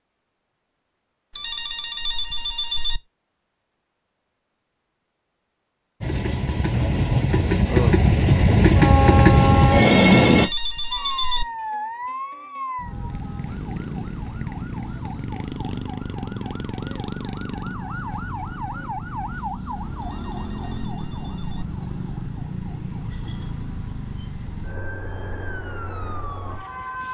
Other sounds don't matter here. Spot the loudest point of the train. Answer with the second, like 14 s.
10 s.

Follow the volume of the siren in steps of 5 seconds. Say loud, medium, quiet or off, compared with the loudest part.
off, off, loud, loud, loud, loud.